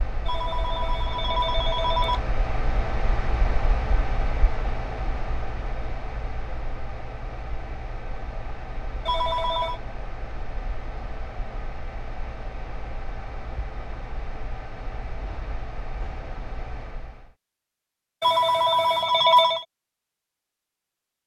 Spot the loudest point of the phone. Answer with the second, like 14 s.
19 s.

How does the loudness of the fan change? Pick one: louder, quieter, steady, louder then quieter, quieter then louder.
quieter.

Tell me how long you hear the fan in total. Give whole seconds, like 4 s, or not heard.
17 s.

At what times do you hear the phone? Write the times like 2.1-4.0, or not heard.
0.2-2.2, 9.1-9.8, 18.2-19.6.